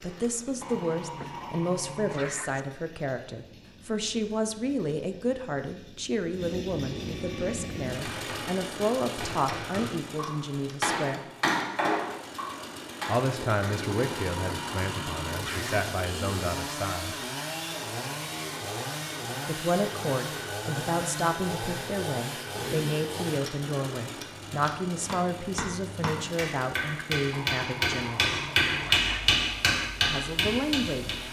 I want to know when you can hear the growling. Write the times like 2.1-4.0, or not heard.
0.6-2.6, 13.9-15.9, 27.3-29.4.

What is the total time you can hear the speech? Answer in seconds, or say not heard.
25 s.